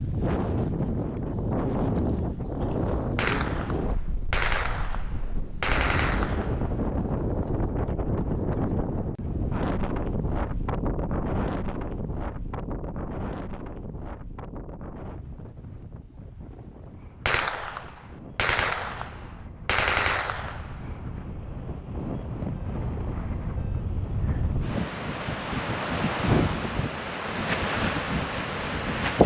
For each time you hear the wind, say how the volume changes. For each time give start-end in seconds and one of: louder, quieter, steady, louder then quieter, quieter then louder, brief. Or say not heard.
0.0-29.2 quieter then louder.